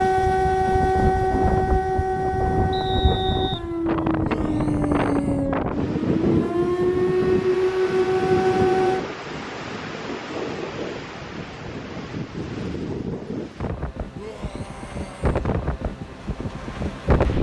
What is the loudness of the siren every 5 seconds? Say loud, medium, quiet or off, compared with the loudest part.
loud, loud, off, off.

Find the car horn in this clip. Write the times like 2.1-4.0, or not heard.
not heard.